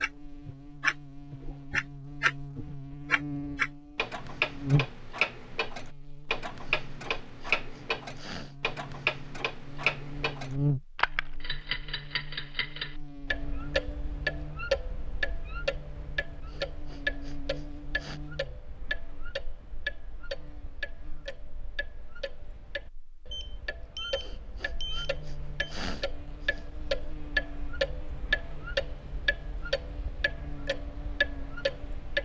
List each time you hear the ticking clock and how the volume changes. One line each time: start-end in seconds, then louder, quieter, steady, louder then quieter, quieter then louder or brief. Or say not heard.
0.0-32.2 quieter then louder.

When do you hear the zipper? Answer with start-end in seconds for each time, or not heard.
not heard.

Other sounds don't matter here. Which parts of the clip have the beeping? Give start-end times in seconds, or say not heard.
23.3-25.8.